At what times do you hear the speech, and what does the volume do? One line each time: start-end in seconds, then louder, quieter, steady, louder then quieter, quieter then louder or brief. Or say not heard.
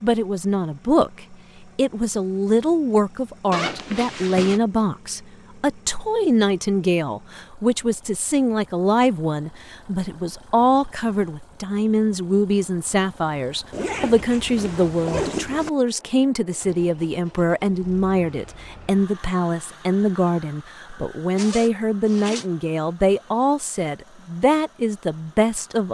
0.0-25.8 steady.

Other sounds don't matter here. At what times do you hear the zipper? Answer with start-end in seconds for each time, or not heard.
3.5-4.6, 13.7-15.7, 21.3-22.4.